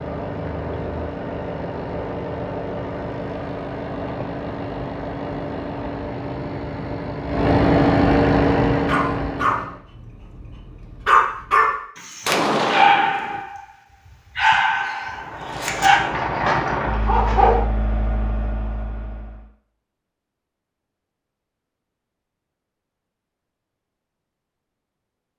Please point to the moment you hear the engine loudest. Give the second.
8 s.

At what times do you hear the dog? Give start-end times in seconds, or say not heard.
8.8-13.6, 14.3-17.6.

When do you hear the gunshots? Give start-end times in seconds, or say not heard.
12.2-13.4.